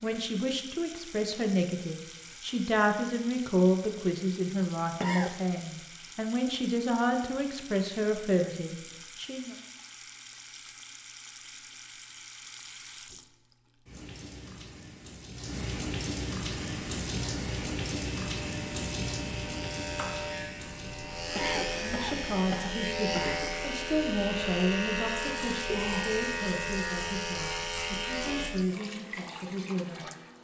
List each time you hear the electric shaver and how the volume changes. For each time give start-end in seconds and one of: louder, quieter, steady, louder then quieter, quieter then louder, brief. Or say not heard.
16.6-28.5 louder.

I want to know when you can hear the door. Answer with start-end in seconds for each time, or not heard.
not heard.